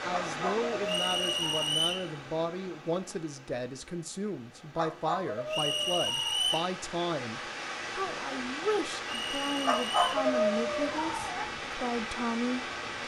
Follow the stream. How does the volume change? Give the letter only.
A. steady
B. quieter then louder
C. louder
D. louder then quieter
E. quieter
B.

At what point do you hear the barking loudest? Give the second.
10 s.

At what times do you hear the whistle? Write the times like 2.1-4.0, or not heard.
0.8-2.1, 5.5-6.7, 9.1-10.0.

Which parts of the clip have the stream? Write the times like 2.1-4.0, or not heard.
0.0-13.0.